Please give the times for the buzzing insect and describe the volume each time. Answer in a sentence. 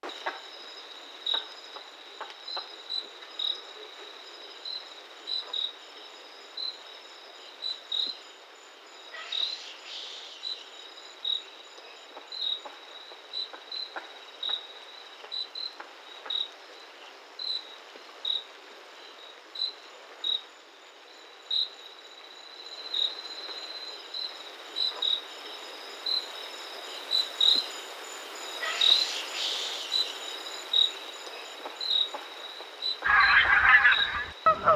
The buzzing insect can be heard from 0.0 to 34.7 s, getting louder.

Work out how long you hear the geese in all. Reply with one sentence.
You can hear the geese for 2 seconds altogether.